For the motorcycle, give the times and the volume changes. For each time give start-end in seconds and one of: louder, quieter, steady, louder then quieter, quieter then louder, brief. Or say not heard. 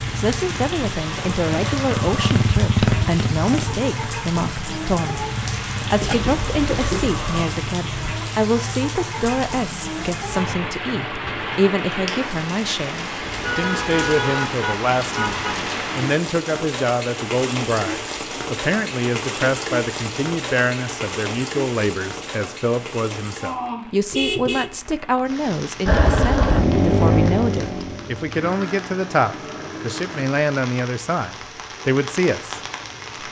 0.0-7.7 louder then quieter
25.9-30.2 quieter.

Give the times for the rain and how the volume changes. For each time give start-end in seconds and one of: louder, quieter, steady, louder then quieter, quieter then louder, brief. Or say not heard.
0.0-33.2 quieter.